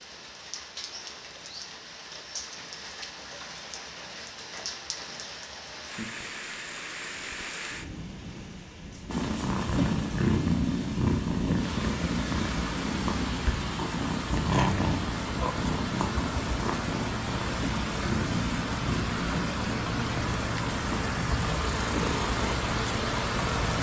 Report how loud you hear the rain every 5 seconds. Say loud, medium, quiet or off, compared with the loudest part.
medium, medium, medium, loud, loud.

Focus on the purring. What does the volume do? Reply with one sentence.
The volume of the purring goes down.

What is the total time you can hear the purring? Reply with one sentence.
You can hear the purring for 15 seconds altogether.